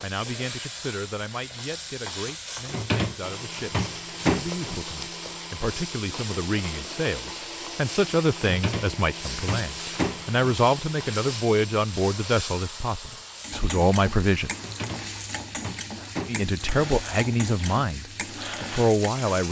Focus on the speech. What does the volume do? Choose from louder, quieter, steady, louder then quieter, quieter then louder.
louder.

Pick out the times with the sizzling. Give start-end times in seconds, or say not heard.
0.0-19.4.